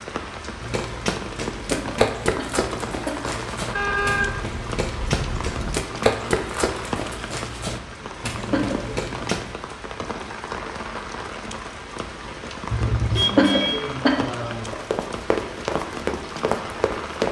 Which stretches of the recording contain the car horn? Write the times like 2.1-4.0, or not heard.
3.8-5.8, 12.7-13.8.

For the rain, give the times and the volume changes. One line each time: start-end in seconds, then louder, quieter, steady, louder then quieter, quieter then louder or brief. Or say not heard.
0.0-17.2 steady.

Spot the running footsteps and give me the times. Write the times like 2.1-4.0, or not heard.
0.6-9.6, 14.7-17.2.